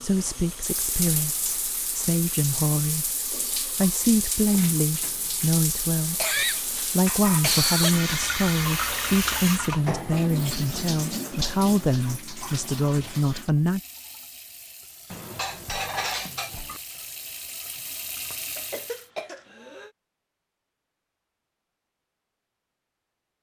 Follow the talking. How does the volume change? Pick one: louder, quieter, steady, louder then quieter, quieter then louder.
steady.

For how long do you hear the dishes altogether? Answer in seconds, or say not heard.
3 s.